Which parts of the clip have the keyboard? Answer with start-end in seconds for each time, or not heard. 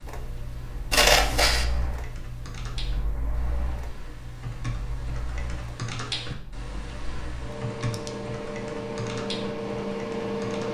0.0-10.6.